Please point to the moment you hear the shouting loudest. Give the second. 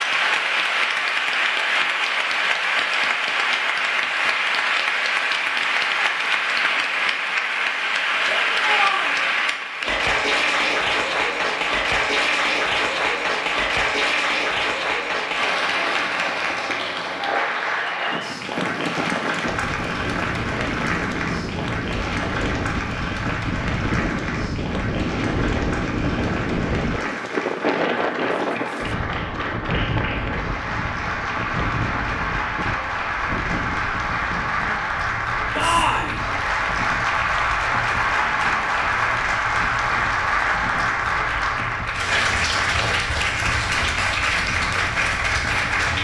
36 s.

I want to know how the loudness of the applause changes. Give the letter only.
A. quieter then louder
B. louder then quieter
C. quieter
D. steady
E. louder
A.